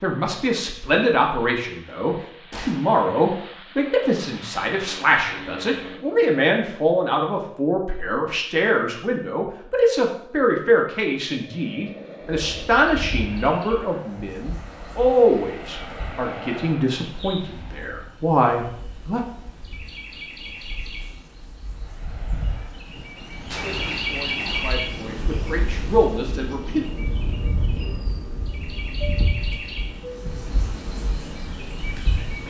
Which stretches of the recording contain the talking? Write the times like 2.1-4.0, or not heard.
0.0-19.2, 23.6-26.9.